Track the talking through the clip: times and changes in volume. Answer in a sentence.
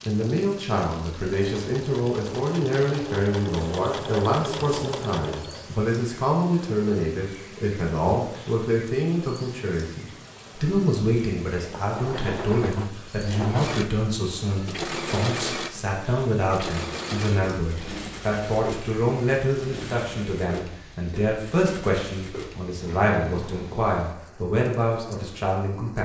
The talking can be heard from 0.1 to 26.0 s, at a steady volume.